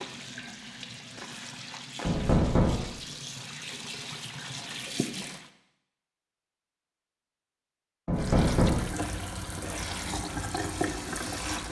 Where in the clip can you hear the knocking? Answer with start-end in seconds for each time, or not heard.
2.0-2.8, 8.1-8.8.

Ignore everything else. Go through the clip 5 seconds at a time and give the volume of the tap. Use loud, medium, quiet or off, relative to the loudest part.
medium, loud, loud.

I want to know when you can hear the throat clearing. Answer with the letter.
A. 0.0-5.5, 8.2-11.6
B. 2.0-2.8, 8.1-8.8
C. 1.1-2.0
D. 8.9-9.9
D.